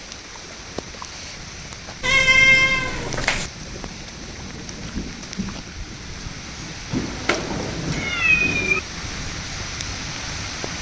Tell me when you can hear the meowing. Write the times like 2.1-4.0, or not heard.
2.0-3.5, 6.9-8.8.